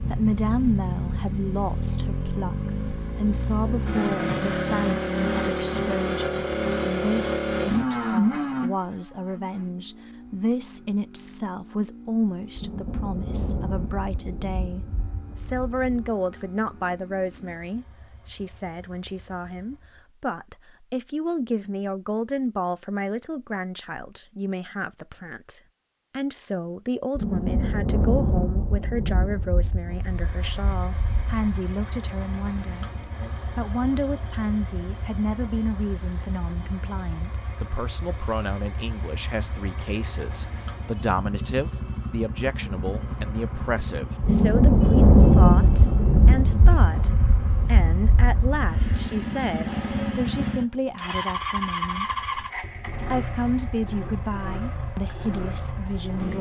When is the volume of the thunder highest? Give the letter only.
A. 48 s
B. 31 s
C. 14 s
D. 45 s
D.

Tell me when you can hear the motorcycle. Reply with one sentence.
You can hear the motorcycle from 0.0 to 20.1 s and from 29.9 to 56.3 s.